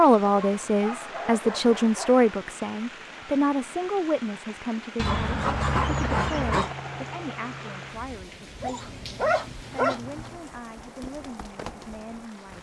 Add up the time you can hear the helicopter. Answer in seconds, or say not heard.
3 s.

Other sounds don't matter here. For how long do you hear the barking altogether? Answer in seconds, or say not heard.
6 s.